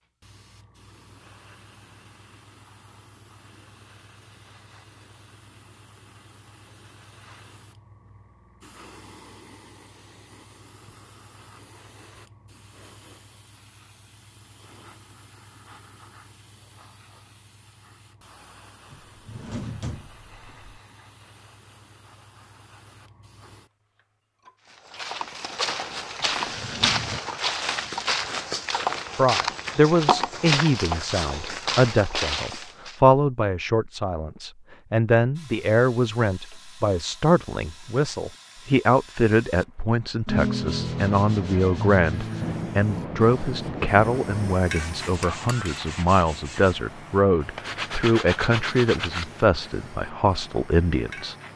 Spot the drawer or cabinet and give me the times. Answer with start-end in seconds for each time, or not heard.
18.9-20.8, 26.2-27.2.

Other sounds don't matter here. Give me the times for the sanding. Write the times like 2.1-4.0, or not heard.
40.2-46.8, 47.5-49.3.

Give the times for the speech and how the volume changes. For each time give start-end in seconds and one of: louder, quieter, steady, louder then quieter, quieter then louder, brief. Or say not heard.
29.1-51.4 steady.